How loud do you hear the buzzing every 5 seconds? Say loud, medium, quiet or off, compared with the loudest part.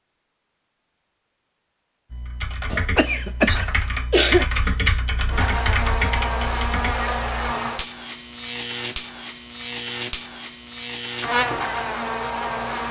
off, loud, loud.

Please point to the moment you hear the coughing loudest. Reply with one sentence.
The volume of the coughing peaks at 4 seconds.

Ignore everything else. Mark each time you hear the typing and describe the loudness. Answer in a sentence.
The typing can be heard from 2.1 to 7.3 s, getting louder then quieter.